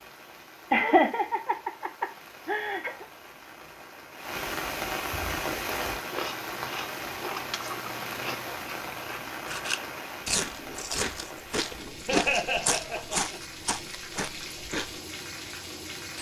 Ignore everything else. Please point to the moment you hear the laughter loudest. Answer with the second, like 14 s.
1 s.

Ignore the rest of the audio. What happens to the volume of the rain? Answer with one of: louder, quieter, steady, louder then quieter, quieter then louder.
louder then quieter.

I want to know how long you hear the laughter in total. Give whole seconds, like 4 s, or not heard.
4 s.